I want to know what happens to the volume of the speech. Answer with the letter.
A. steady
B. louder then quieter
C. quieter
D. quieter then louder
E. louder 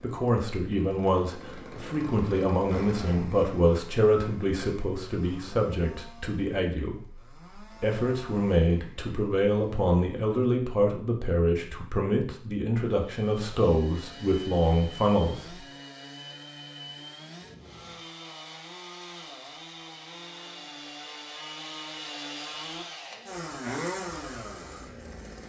A.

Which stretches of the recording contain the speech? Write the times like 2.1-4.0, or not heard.
0.0-7.2, 7.8-15.6.